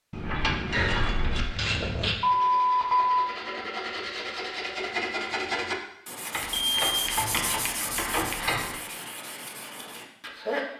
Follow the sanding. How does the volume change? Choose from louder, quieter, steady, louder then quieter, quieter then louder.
louder then quieter.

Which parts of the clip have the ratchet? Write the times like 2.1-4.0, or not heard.
0.1-2.1, 6.3-8.8.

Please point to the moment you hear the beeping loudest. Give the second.
3 s.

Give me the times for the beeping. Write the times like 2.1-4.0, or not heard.
2.2-3.2, 6.5-7.2.